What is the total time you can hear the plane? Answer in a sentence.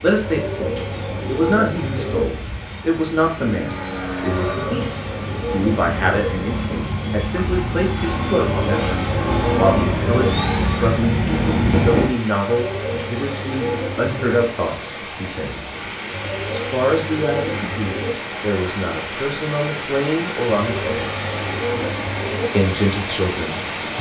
The plane can be heard for 12 seconds in total.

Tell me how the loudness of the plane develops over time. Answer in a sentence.
The loudness of the plane goes up.